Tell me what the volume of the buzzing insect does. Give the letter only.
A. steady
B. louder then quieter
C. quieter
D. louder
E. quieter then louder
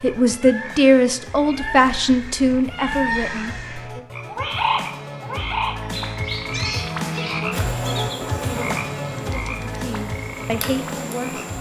E.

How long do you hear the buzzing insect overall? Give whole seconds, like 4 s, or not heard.
4 s.